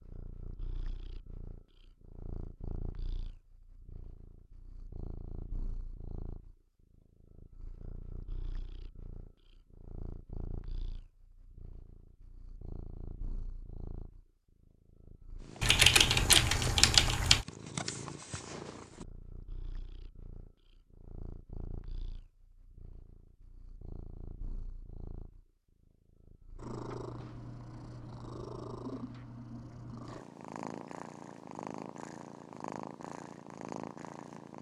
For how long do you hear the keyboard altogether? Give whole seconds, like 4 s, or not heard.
2 s.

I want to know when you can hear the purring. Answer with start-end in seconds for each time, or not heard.
0.0-34.5.